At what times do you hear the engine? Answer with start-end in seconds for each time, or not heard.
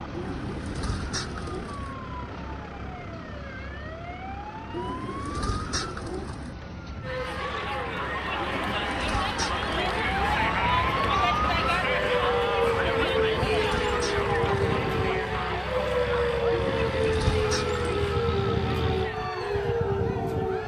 0.0-19.1.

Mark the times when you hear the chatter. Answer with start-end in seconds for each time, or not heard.
7.0-20.6.